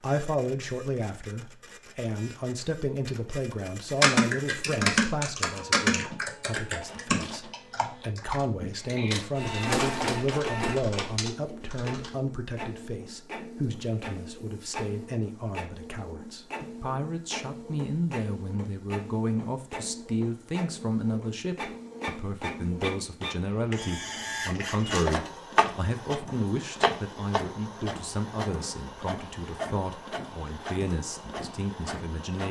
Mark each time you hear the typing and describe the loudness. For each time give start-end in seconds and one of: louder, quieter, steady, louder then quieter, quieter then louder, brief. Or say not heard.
4.0-12.1 quieter.